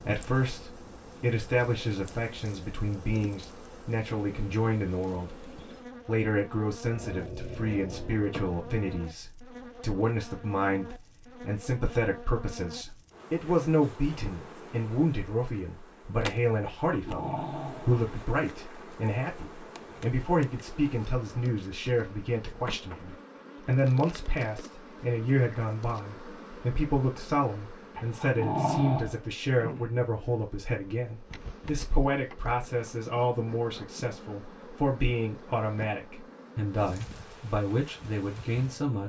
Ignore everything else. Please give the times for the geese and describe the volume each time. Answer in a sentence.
The geese can't be heard in this clip.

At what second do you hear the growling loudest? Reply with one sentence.
The volume of the growling peaks at 29 seconds.